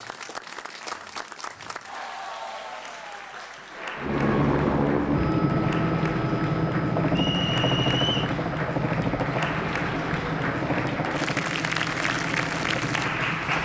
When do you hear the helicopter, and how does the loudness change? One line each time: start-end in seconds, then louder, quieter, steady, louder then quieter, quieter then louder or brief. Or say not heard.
4.0-13.5 quieter.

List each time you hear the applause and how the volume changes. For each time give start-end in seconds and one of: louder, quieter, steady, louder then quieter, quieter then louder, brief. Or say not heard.
0.0-13.5 louder.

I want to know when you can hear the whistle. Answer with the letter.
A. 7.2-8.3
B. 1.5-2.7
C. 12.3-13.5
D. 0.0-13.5
A.